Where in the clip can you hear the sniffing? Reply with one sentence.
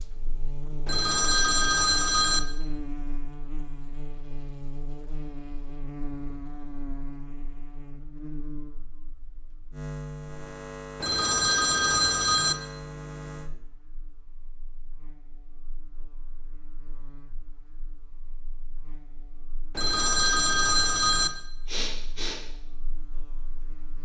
You can hear the sniffing from 21.6 to 22.4 s.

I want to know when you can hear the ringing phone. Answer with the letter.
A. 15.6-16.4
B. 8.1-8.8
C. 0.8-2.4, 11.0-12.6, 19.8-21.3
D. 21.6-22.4
C.